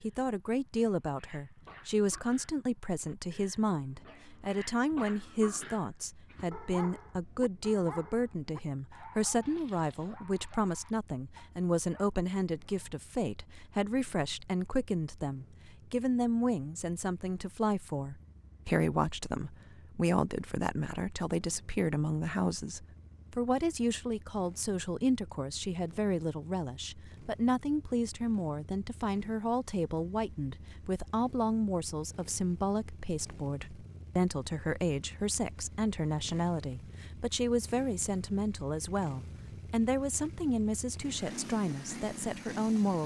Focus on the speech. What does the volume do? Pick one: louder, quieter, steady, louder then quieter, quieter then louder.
steady.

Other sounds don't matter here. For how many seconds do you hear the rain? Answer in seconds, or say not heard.
not heard.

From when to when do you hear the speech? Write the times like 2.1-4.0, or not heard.
0.0-43.0.